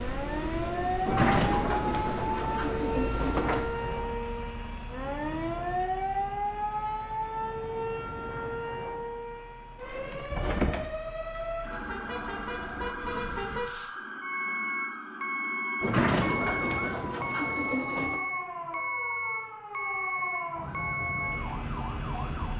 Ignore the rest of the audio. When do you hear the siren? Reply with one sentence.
The siren can be heard from 0.0 to 22.5 s.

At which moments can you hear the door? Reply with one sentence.
You can hear the door from 1.1 to 3.6 s, from 10.3 to 10.9 s and from 15.8 to 18.2 s.